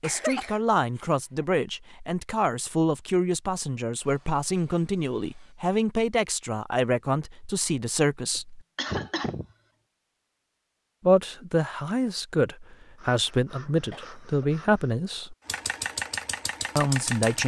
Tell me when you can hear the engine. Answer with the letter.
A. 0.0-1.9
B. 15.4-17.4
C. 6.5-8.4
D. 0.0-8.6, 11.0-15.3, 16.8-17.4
B.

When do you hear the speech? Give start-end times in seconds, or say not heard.
0.0-8.6, 11.0-15.3, 16.8-17.4.